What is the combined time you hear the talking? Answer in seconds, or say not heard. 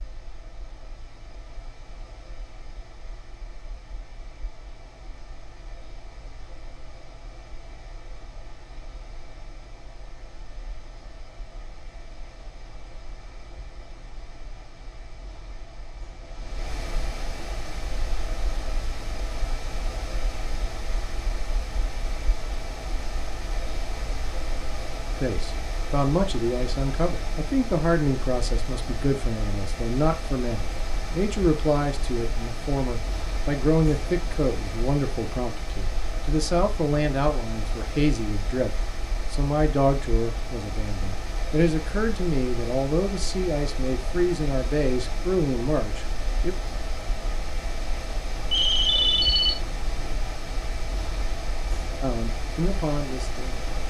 23 s.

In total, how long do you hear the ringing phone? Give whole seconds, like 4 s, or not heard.
2 s.